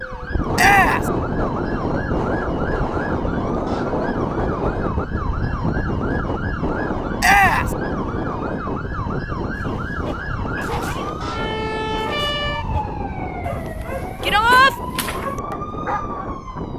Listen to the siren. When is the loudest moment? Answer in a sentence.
The loudest moment of the siren is at 12 seconds.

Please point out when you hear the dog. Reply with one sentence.
You can hear the dog from 9.6 to 16.4 s.